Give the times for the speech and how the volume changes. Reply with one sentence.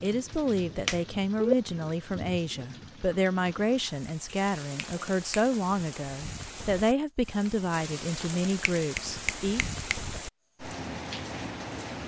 The speech can be heard from 0.0 to 9.7 s, at a steady volume.